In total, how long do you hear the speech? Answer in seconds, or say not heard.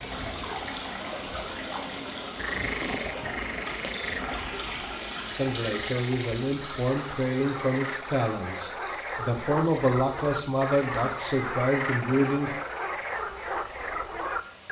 7 s.